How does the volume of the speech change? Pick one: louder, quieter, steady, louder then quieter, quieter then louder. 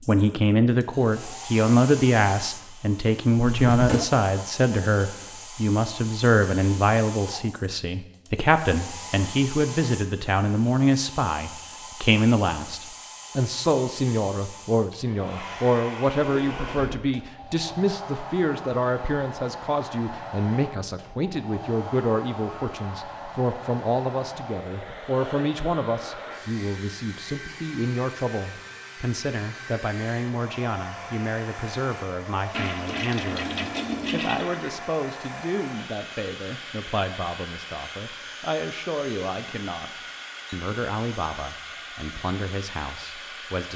quieter.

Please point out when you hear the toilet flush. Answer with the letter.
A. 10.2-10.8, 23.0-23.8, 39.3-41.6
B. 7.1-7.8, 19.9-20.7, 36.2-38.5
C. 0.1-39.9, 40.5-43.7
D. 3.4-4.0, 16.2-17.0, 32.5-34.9
D.